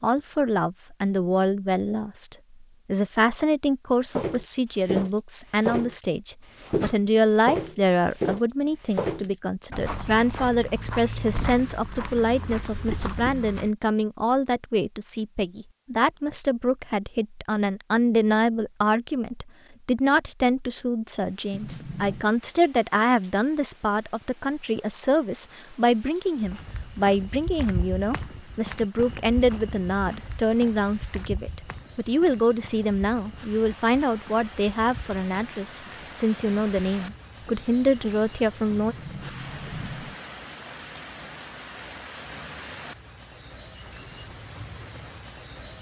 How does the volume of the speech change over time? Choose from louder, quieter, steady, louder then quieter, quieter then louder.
steady.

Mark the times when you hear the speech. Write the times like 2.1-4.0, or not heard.
0.0-39.0.